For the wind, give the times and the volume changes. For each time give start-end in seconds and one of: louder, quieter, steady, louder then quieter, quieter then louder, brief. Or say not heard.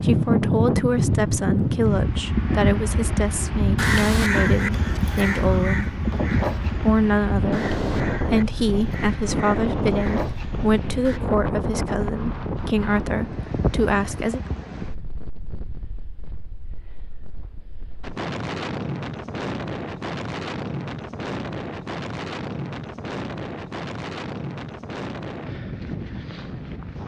0.0-27.0 quieter.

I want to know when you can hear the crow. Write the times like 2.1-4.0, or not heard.
3.8-11.2.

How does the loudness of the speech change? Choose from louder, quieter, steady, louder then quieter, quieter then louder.
steady.